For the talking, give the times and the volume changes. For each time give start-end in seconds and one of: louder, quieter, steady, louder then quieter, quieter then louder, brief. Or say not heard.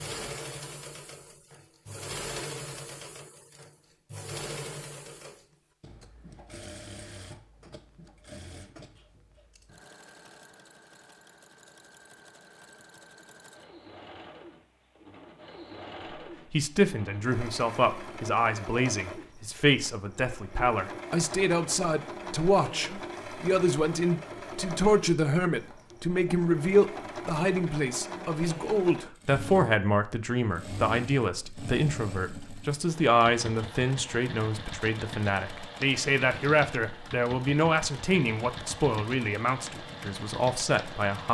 16.5-41.2 steady.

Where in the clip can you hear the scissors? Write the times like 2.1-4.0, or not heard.
not heard.